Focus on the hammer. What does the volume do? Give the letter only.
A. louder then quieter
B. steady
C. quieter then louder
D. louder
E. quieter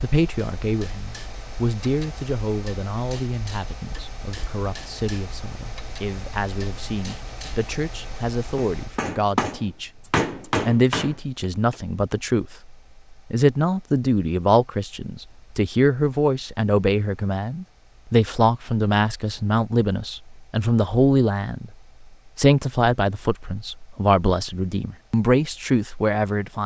D.